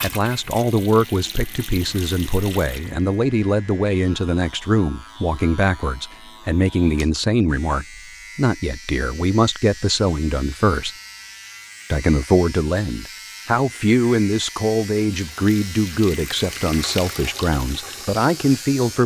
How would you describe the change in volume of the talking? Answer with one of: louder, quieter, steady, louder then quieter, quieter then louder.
steady.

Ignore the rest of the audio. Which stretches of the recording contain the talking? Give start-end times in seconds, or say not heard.
0.0-10.9, 11.9-19.0.